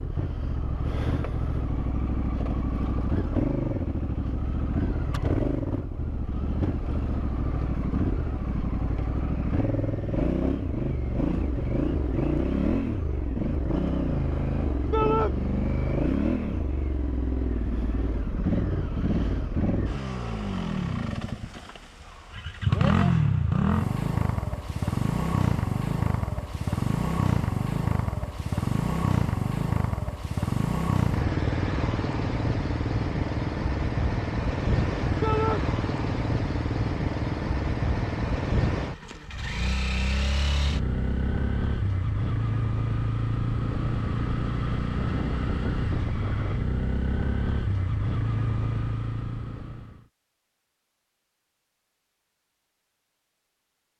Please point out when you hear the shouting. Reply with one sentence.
The shouting can be heard from 14.9 to 15.3 s and from 35.2 to 35.6 s.